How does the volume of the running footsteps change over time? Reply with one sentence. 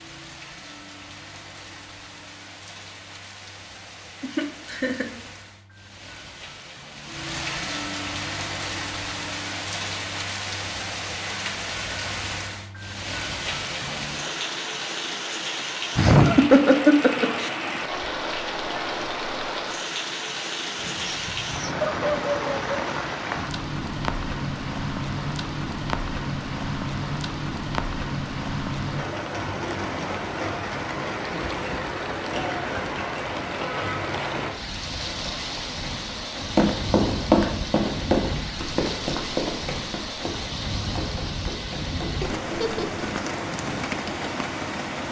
The loudness of the running footsteps goes down.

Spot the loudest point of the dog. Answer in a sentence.
The volume of the dog peaks at 22 seconds.